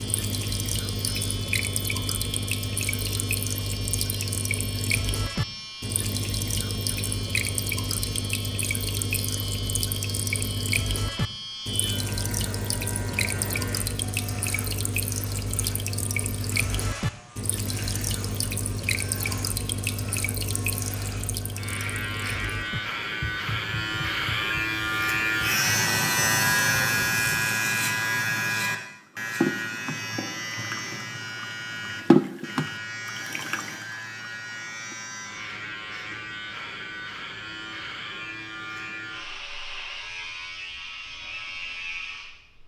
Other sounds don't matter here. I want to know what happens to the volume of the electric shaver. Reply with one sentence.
The volume of the electric shaver goes up, then down.